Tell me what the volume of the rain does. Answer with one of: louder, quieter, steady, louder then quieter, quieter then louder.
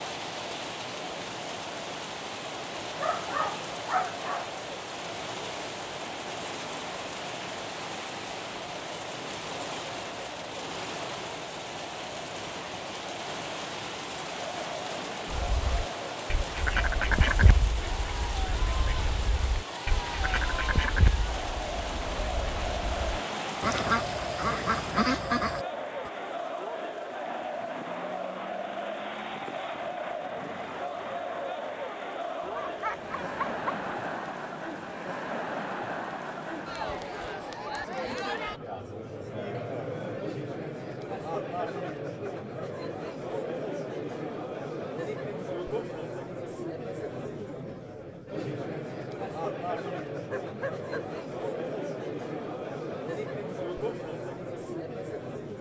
quieter.